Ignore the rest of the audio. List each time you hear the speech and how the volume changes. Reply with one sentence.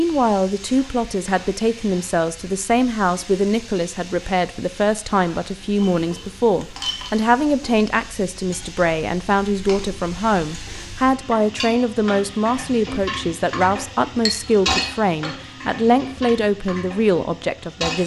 You can hear the speech from 0.0 to 18.0 s, at a steady volume.